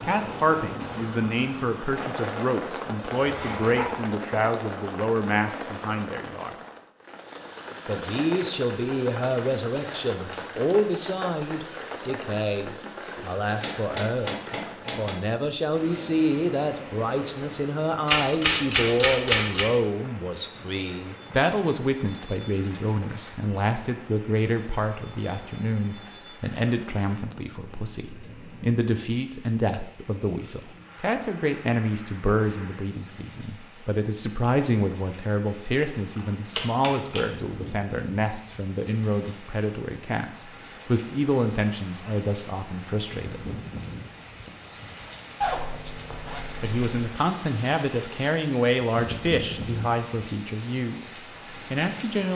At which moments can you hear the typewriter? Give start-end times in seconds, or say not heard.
13.6-15.2, 18.1-19.6, 36.1-37.2.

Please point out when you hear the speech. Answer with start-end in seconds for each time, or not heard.
0.0-6.5, 7.8-14.3, 14.9-43.4, 45.7-52.3.